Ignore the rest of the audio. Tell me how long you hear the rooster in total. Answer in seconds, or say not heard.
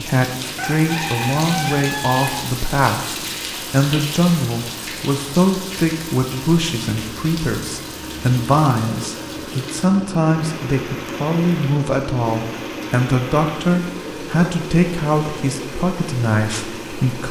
2 s.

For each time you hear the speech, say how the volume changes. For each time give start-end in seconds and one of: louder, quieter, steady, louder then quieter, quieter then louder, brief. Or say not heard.
0.0-17.2 steady.